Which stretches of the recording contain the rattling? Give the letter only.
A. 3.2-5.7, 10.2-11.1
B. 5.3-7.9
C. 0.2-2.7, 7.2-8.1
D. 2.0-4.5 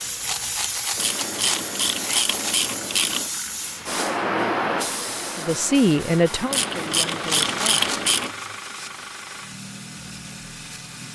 C.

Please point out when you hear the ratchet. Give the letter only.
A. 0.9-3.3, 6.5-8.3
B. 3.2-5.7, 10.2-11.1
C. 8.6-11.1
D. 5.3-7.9
A.